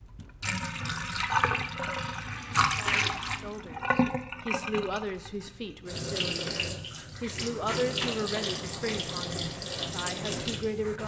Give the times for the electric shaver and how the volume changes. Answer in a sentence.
You can't hear the electric shaver here.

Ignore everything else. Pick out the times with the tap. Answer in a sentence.
The tap can be heard from 0.0 to 11.0 s.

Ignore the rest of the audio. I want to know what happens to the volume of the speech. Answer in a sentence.
The volume of the speech goes up, then down.